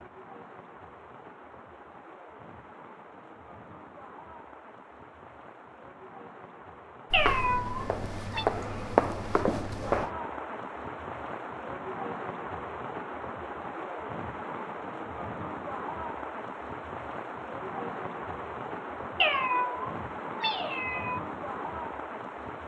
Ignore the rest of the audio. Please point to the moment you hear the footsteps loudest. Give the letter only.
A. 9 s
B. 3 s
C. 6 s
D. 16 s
A.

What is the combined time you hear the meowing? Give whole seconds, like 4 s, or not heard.
3 s.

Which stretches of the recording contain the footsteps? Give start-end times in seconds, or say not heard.
7.1-10.1.